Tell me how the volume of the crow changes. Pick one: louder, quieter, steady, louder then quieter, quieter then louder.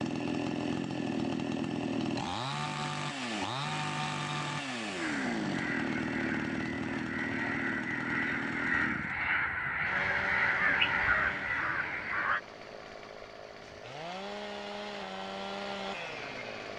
louder.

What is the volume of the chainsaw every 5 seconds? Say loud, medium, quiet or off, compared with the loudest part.
loud, loud, medium, medium.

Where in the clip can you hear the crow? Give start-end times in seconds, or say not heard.
4.9-12.4.